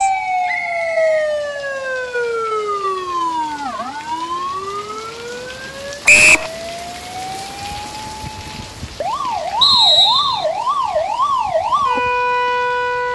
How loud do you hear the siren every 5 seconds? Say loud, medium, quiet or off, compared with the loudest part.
loud, medium, loud.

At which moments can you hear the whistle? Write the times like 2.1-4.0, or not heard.
0.5-1.1, 6.0-6.5, 9.6-10.4.